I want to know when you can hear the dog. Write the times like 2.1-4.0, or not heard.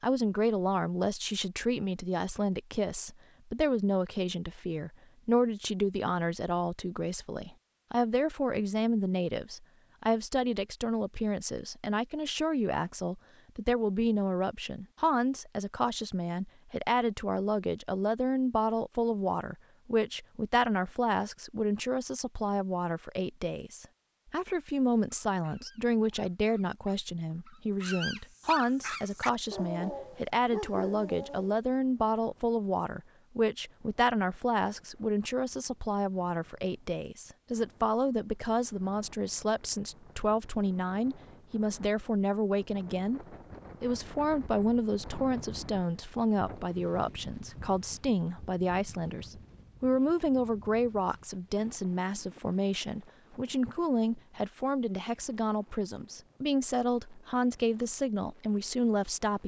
25.4-31.6.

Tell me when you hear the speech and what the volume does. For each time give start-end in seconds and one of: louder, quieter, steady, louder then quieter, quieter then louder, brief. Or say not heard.
0.0-59.4 steady.